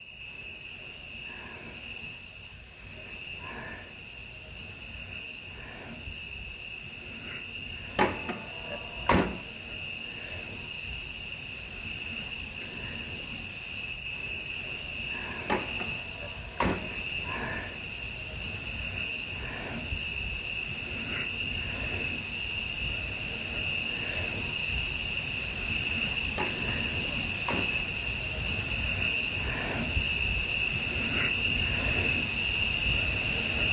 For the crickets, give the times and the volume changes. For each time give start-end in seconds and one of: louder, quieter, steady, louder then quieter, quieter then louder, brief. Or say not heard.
0.0-33.6 louder.